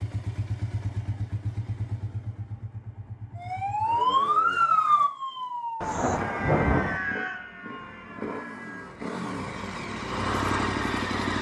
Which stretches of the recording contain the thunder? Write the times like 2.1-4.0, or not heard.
5.8-7.0.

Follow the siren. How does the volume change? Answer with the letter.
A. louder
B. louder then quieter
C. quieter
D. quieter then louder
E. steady
C.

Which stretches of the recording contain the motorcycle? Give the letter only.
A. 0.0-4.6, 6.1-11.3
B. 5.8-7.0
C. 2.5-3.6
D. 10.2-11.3
A.